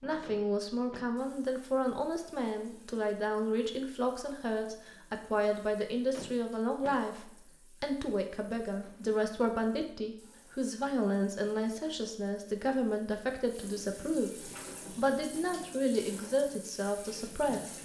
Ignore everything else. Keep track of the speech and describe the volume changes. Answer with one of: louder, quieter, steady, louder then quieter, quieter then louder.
steady.